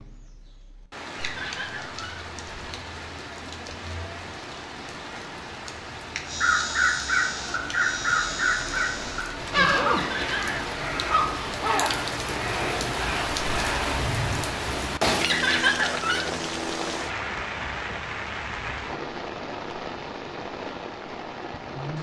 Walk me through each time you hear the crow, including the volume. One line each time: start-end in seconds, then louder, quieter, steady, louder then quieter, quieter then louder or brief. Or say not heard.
6.2-14.5 quieter.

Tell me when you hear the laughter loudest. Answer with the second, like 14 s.
16 s.